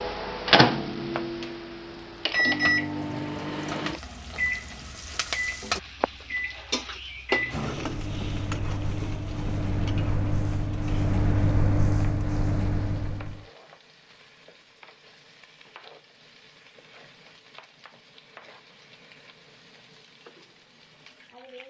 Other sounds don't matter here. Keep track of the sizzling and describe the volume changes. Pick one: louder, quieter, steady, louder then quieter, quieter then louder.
louder then quieter.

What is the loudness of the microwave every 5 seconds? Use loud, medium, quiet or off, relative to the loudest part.
loud, medium, loud, off, off.